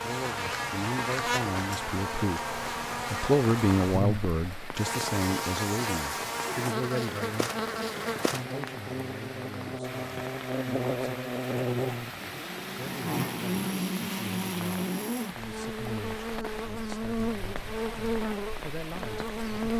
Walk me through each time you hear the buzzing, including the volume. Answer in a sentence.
The buzzing can be heard from 0.0 to 19.7 s, at a steady volume.